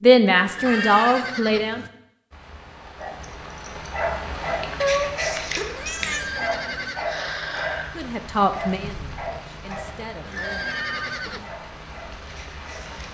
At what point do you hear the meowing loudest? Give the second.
5 s.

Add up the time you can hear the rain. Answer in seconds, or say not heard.
11 s.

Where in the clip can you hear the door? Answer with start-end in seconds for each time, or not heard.
not heard.